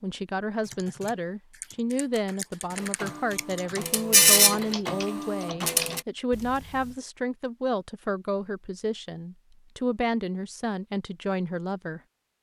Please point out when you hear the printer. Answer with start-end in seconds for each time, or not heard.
2.8-6.0.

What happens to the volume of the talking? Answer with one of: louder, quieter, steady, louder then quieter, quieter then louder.
steady.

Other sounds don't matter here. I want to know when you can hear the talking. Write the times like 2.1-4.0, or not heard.
0.0-12.0.